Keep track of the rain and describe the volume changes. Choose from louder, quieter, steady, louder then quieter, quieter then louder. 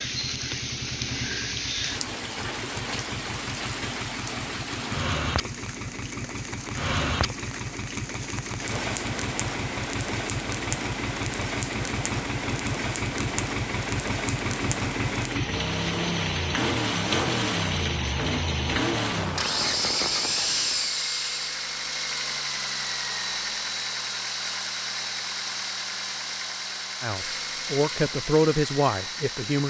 steady.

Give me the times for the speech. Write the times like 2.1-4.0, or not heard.
27.0-29.6.